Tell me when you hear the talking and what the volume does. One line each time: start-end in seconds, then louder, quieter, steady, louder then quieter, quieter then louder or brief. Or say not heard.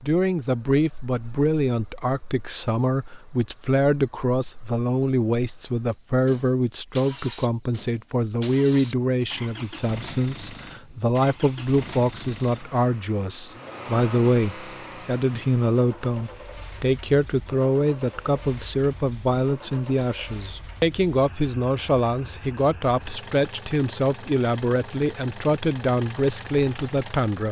0.0-27.4 steady.